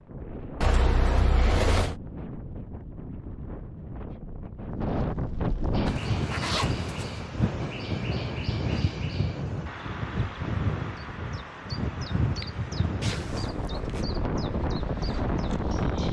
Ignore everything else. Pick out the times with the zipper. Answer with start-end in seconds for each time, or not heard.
0.6-1.9, 5.8-7.2, 13.0-14.1.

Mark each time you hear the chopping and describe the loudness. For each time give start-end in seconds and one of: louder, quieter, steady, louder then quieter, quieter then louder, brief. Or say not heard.
not heard.